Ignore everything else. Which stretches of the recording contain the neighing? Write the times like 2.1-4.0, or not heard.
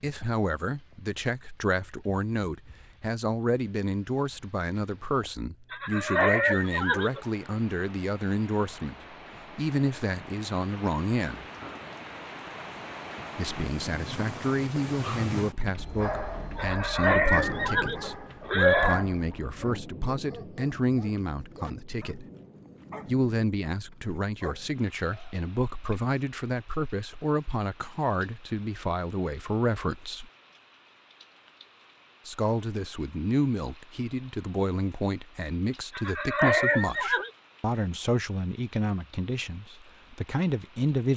5.7-7.2, 16.6-19.1, 35.9-37.3.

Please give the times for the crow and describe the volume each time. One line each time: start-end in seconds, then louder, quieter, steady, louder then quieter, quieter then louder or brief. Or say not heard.
not heard.